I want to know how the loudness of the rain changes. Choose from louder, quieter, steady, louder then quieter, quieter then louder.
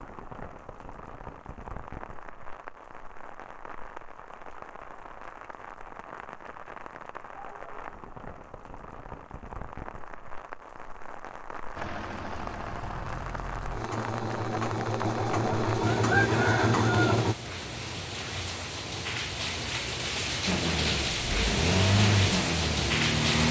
louder.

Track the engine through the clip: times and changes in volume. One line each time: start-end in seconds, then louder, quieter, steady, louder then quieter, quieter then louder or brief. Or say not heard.
11.8-17.4 louder
20.4-23.4 brief.